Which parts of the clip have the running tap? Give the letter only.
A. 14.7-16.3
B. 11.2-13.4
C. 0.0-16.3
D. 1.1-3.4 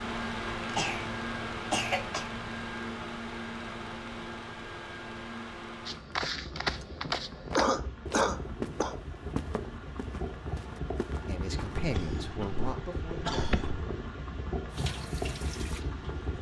A.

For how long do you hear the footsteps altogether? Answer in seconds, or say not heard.
6 s.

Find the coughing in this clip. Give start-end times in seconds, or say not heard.
0.6-1.1, 1.7-2.3, 7.5-8.9, 11.8-13.8.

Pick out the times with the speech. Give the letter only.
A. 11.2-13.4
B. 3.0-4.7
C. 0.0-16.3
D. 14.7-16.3
A.